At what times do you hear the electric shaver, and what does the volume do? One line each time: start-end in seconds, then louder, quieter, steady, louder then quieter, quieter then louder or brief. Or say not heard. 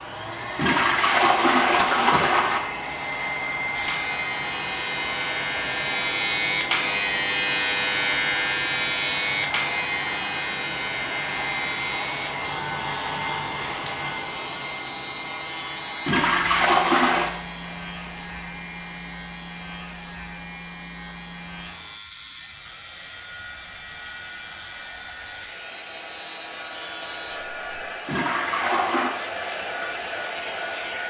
3.7-27.6 quieter.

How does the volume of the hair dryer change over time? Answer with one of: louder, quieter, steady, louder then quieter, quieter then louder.
quieter then louder.